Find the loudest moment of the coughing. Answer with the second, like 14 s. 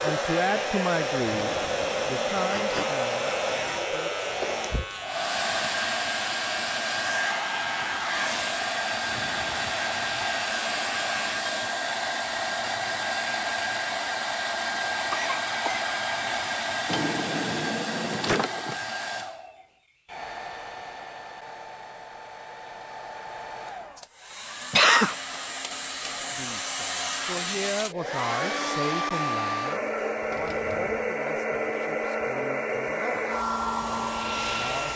25 s.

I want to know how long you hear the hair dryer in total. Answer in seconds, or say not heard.
35 s.